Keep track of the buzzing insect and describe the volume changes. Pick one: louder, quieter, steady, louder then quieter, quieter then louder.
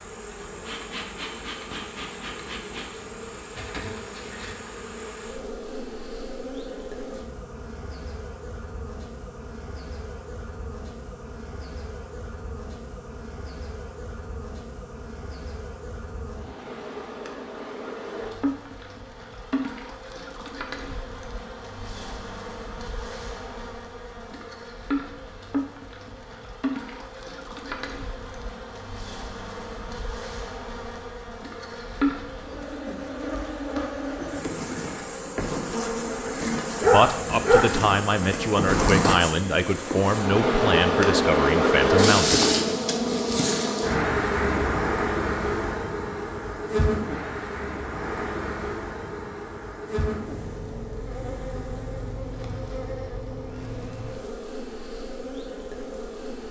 louder then quieter.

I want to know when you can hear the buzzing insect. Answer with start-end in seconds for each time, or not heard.
0.0-56.4.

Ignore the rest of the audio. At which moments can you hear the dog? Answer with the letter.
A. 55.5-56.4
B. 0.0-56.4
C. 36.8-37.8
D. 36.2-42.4
C.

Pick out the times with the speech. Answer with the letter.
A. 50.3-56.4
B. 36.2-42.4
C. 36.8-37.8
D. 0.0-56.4
B.